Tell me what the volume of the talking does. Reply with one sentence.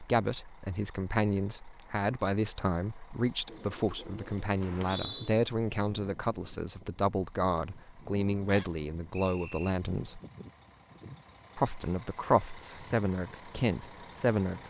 The loudness of the talking stays about the same.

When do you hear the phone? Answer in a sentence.
The phone can't be heard in this clip.